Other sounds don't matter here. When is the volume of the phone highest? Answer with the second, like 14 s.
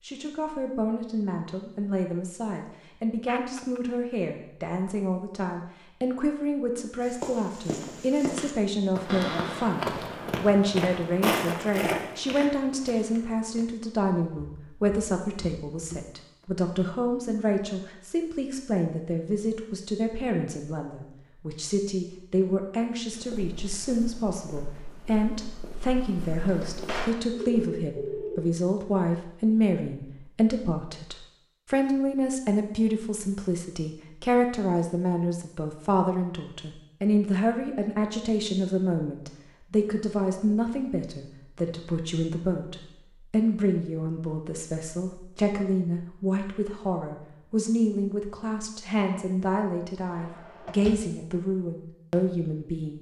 28 s.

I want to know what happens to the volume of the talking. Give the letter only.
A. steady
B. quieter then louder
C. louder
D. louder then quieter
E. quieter
A.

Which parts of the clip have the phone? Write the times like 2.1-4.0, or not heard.
3.2-3.8, 27.3-28.5.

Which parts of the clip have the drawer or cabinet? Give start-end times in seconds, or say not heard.
9.1-9.8, 26.4-27.2, 50.1-51.1.